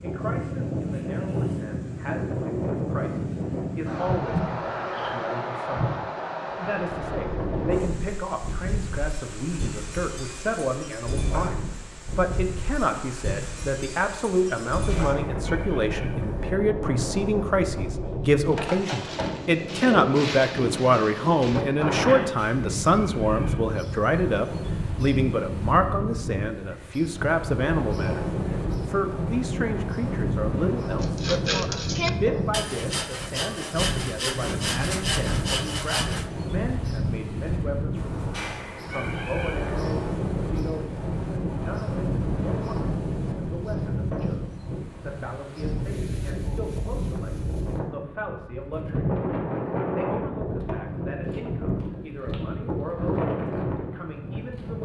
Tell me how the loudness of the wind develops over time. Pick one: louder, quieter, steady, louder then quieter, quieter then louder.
steady.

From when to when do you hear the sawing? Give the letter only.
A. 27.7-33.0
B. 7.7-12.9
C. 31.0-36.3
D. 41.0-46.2
C.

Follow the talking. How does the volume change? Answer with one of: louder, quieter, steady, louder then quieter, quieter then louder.
louder then quieter.